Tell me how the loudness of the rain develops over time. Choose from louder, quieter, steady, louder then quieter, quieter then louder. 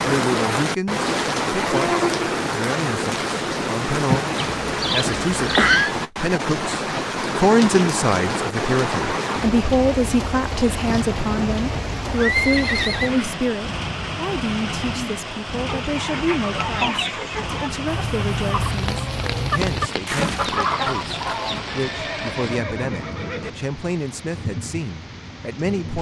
quieter.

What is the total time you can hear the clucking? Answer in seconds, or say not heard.
6 s.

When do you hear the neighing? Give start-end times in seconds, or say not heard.
4.3-6.0, 10.8-13.4, 21.7-23.5.